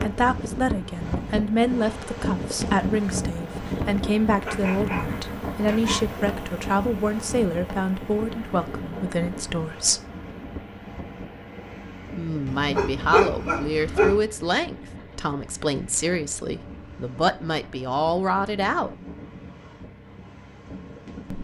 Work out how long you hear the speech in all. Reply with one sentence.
The speech can be heard for 17 seconds in total.